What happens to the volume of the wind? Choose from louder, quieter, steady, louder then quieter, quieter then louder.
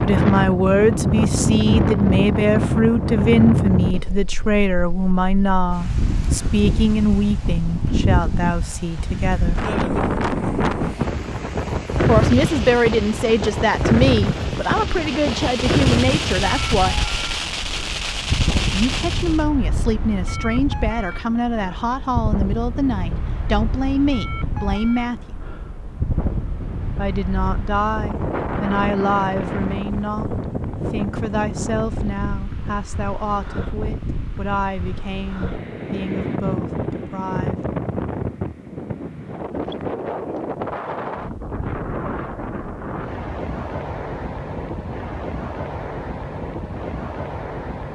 quieter.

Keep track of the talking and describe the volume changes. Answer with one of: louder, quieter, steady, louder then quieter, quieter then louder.
quieter.